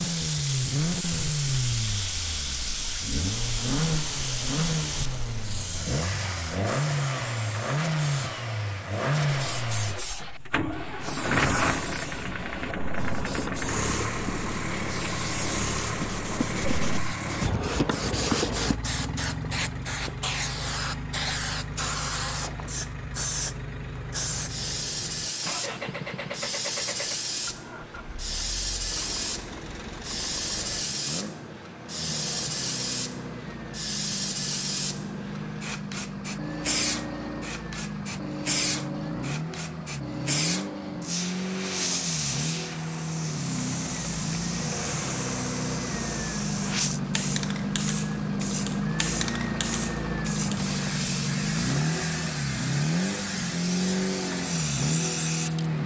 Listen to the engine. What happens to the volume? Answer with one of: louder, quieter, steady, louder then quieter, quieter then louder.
quieter then louder.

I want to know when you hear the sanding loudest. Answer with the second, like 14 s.
18 s.